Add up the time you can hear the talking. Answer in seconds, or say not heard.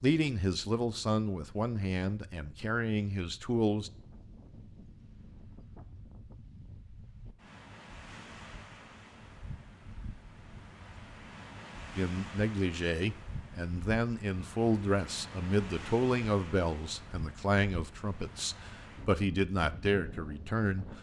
13 s.